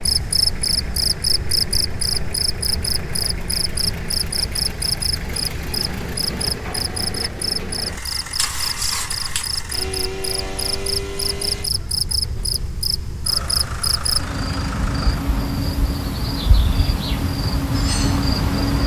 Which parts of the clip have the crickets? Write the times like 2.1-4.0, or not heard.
0.0-18.8.